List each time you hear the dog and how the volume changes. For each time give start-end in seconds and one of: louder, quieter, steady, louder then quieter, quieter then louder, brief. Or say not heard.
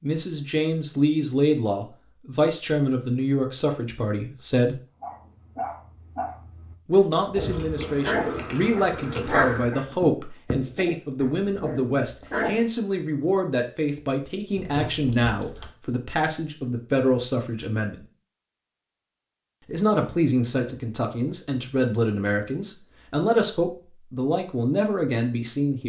5.0-12.7 louder then quieter.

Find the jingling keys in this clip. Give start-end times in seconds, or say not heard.
7.3-9.8, 14.6-15.8.